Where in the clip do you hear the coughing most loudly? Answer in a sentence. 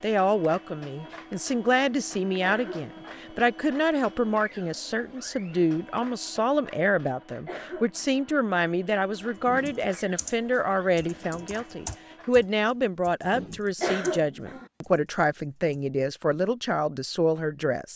The volume of the coughing peaks at 14 seconds.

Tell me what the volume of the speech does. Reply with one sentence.
The loudness of the speech stays about the same.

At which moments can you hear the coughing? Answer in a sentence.
You can hear the coughing from 2.4 to 3.3 s, from 7.5 to 8.3 s and from 13.8 to 14.7 s.